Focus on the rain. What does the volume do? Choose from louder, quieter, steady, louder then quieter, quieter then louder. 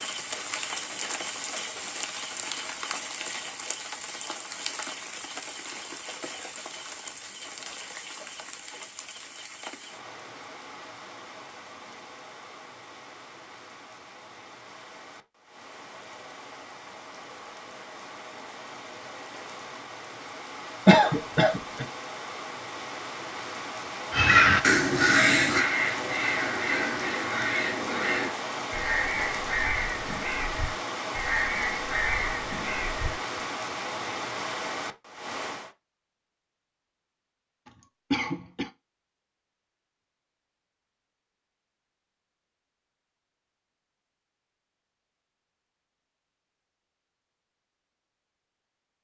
quieter then louder.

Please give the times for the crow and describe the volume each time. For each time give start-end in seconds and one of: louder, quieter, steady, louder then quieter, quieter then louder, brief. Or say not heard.
24.1-33.1 quieter.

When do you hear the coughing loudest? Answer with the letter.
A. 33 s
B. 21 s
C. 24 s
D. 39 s
B.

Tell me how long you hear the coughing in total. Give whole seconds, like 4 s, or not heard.
2 s.